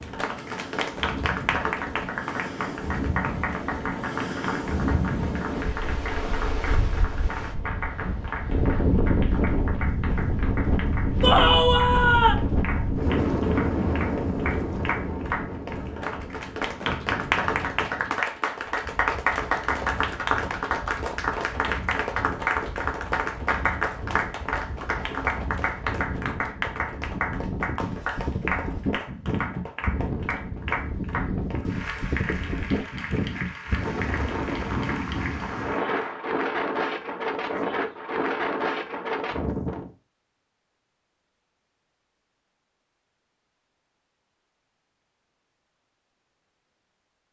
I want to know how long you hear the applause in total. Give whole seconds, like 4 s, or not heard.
36 s.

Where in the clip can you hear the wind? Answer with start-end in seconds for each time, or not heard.
0.0-40.0.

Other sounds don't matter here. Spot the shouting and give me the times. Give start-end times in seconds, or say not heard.
11.2-12.3.